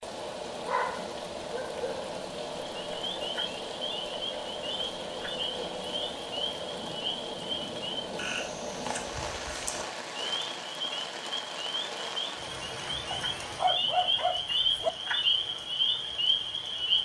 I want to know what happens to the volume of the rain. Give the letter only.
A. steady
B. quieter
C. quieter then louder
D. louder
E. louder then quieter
B.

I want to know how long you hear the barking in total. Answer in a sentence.
You can hear the barking for 3 seconds altogether.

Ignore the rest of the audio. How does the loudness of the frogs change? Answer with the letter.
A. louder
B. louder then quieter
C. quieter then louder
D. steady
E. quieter
A.